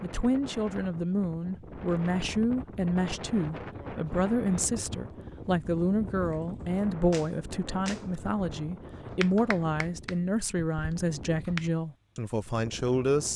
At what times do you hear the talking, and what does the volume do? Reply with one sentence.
The talking can be heard from 0.0 to 13.3 s, at a steady volume.